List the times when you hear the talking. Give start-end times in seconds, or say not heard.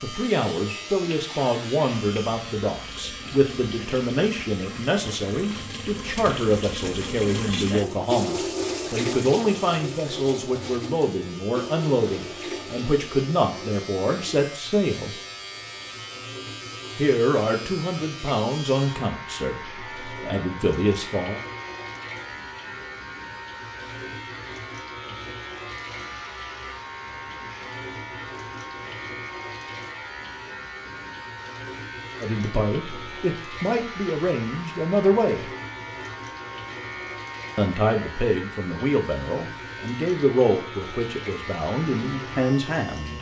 0.0-15.2, 16.9-21.4, 32.2-35.5, 37.5-43.1.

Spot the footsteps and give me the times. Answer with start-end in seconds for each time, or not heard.
not heard.